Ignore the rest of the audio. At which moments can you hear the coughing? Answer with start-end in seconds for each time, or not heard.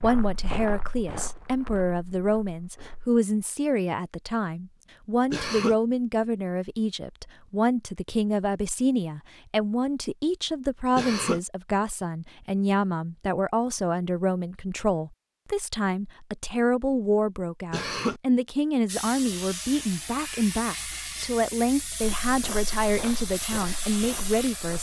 5.3-5.8, 10.9-11.4, 17.7-18.2.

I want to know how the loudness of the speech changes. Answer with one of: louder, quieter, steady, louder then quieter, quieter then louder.
steady.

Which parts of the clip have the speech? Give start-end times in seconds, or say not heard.
0.0-24.7.